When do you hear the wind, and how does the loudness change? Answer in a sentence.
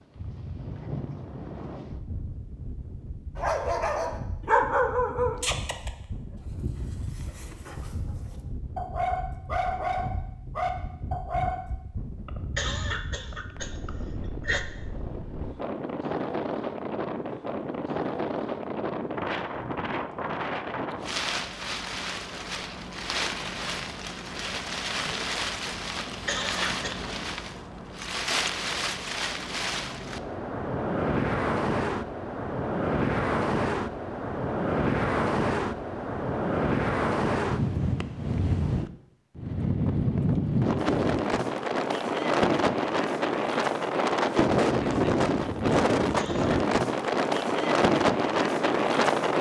The wind can be heard from 0.0 to 49.3 s, getting louder.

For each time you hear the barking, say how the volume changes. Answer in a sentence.
The barking can be heard from 3.4 to 11.7 s, getting quieter then louder.